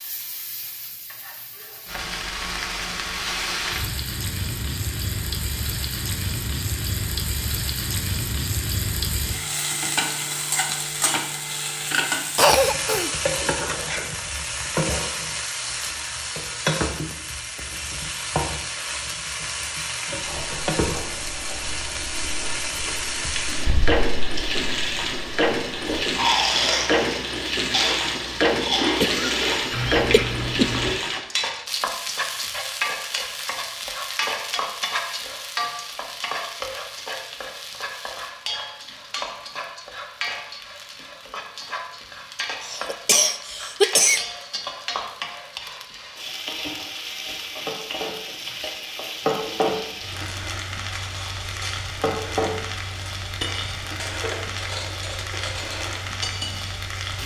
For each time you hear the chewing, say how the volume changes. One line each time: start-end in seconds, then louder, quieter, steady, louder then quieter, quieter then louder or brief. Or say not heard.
20.2-30.9 louder.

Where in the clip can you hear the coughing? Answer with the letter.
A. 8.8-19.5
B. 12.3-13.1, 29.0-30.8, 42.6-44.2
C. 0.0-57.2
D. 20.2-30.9
B.